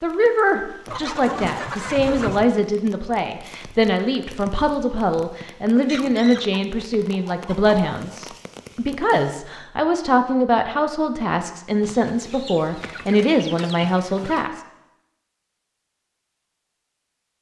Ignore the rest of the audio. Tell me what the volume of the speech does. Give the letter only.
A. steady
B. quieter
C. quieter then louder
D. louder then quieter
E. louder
A.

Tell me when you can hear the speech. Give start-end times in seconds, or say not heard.
0.0-14.6.